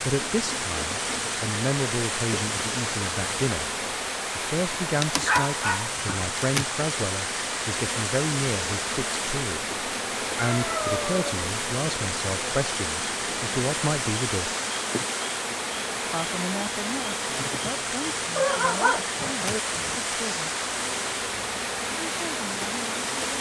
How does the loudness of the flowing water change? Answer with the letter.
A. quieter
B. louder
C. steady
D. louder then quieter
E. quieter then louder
C.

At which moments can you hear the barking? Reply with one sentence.
You can hear the barking from 5.2 to 6.2 s, from 10.3 to 11.3 s and from 18.4 to 19.9 s.